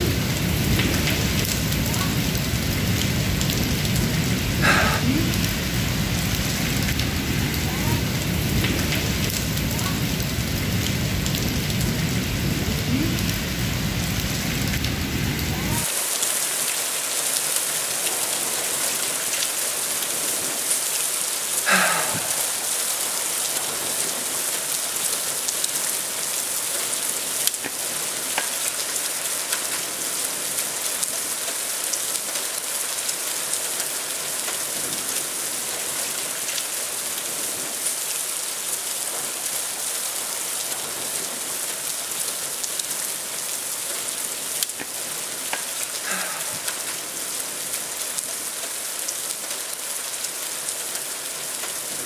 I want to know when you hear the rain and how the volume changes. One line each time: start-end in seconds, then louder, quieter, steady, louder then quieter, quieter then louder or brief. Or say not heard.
0.0-52.0 quieter.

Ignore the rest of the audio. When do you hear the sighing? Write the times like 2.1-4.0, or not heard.
4.6-5.0, 21.6-22.5, 46.0-46.8.